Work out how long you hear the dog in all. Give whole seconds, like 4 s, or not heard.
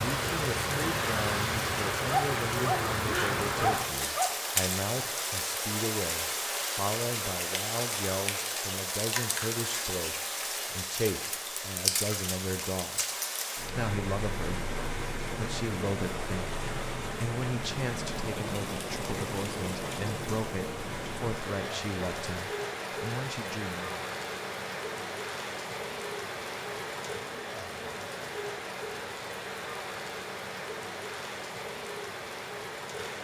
2 s.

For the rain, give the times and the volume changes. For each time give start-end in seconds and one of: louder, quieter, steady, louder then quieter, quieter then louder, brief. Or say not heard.
0.0-33.1 quieter.